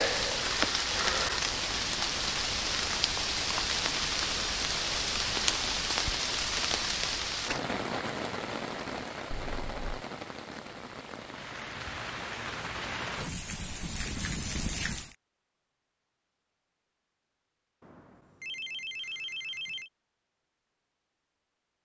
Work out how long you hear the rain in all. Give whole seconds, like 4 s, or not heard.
15 s.